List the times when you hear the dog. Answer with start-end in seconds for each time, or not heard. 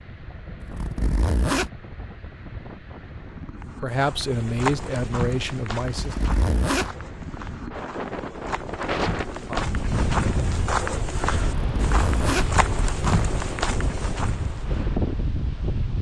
not heard.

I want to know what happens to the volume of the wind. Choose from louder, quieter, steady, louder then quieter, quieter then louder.
louder.